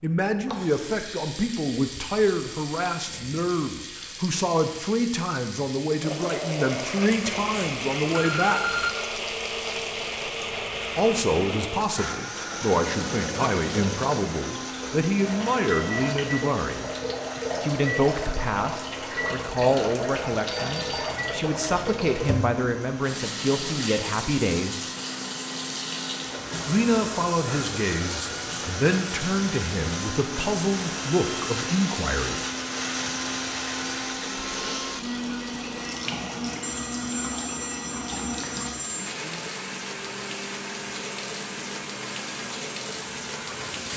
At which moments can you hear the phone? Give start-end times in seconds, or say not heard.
7.1-8.9, 20.4-21.2, 36.6-39.0.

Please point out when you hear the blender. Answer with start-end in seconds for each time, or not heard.
6.0-43.9.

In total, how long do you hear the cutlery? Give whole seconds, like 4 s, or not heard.
not heard.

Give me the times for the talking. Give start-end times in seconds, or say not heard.
0.0-8.8, 10.9-16.9, 17.6-24.9, 26.6-32.5.